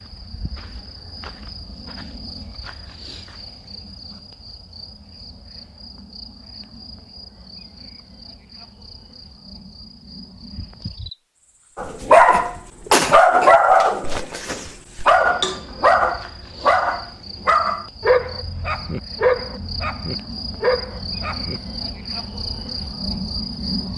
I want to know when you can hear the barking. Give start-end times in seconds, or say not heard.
11.8-21.6.